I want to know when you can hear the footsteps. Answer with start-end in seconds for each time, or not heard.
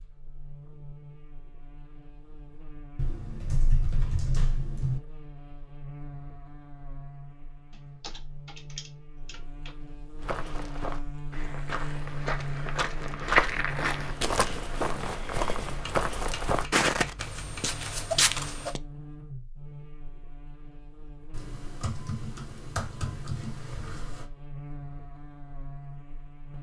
10.2-18.8.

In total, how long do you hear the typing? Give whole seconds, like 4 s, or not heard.
9 s.